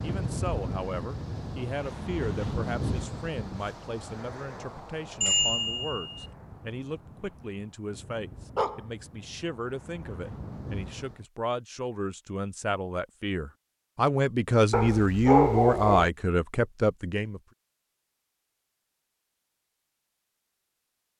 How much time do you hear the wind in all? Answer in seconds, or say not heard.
11 s.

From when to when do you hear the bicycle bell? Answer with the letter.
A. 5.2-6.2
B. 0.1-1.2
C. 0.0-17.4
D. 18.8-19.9
A.